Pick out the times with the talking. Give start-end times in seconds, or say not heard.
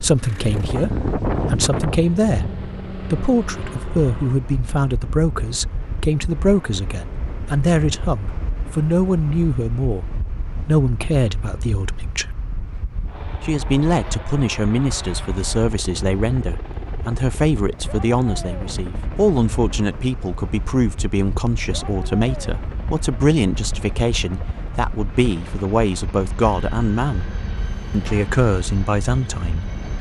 0.0-2.5, 3.1-12.2, 13.4-27.2, 27.9-29.7.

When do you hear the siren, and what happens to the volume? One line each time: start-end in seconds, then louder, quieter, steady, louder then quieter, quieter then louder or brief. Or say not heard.
not heard.